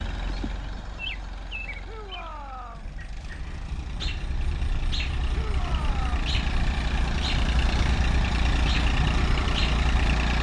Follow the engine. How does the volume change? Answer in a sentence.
The volume of the engine goes up.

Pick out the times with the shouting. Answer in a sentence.
You can hear the shouting from 1.8 to 2.9 s and from 5.3 to 6.2 s.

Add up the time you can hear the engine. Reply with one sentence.
You can hear the engine for 10 seconds altogether.